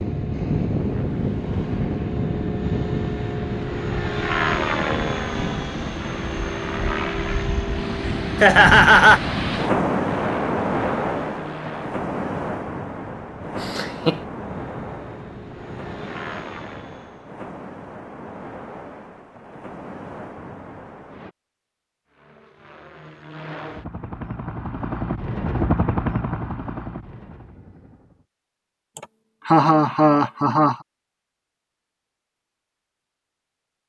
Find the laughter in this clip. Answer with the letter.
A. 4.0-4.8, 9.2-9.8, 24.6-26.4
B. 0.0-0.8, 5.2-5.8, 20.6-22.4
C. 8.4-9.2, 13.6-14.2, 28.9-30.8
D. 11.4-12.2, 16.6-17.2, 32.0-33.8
C.